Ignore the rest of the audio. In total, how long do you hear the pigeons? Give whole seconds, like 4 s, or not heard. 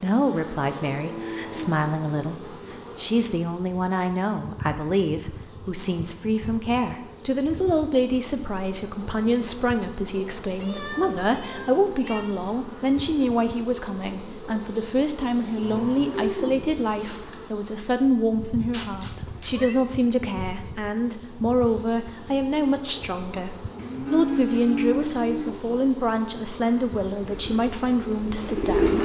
2 s.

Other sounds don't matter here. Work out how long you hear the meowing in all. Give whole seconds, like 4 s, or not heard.
3 s.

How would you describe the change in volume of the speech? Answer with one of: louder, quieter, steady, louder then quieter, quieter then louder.
steady.